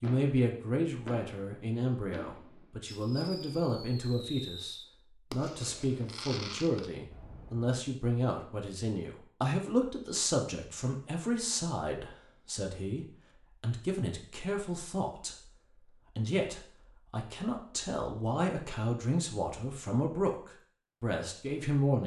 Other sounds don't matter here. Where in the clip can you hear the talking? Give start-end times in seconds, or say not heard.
0.0-15.3, 16.1-22.0.